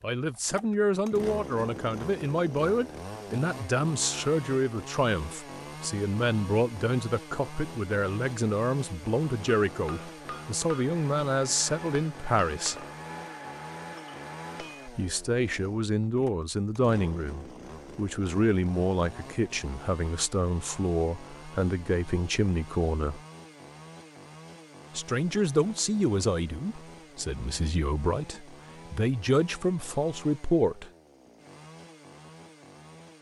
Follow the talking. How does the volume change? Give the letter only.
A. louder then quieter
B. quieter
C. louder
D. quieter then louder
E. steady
E.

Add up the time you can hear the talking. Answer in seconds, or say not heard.
27 s.